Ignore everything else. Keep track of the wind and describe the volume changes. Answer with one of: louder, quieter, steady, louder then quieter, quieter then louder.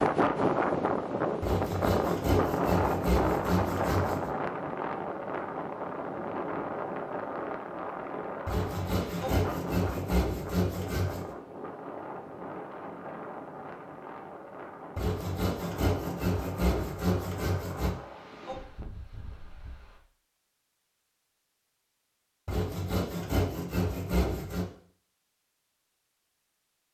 quieter.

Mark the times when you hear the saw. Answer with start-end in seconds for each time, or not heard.
1.4-4.3, 8.4-11.3, 14.9-17.9, 22.4-24.7.